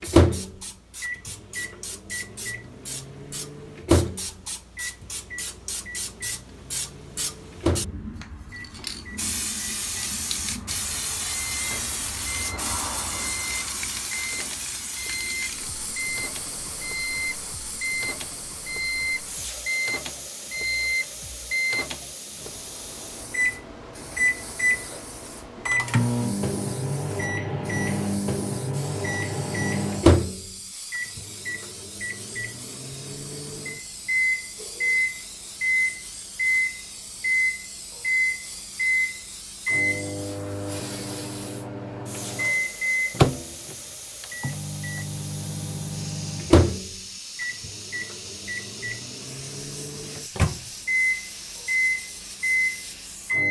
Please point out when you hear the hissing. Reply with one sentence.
You can hear the hissing from 0.0 to 53.4 s.